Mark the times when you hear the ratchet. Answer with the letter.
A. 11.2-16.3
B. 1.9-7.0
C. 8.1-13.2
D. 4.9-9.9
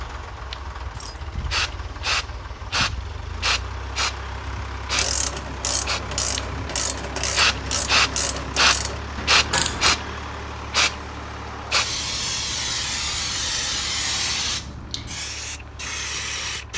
D.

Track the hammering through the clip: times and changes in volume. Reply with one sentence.
The hammering can't be heard in this clip.